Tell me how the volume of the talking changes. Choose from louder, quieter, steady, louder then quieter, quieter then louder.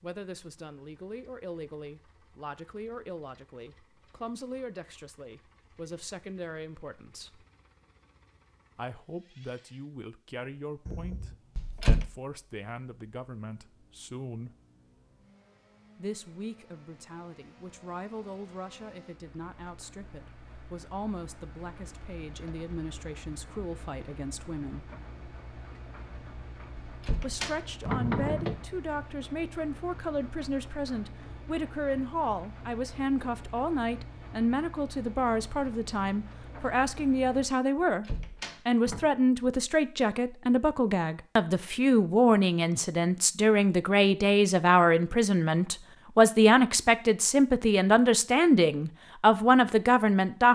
louder.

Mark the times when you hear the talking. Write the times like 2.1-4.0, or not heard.
0.0-7.5, 8.8-14.6, 15.9-24.9, 27.2-50.4.